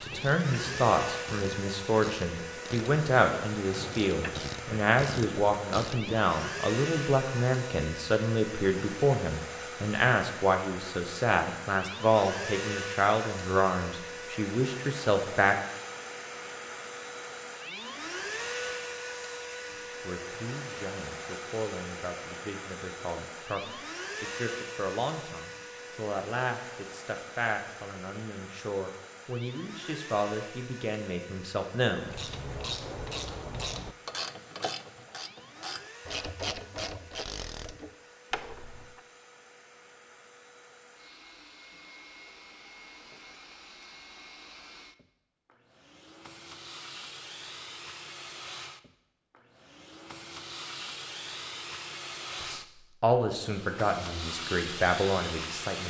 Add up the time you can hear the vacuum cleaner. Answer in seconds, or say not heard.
56 s.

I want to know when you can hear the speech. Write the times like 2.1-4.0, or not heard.
0.0-15.6, 19.7-32.1, 52.4-55.8.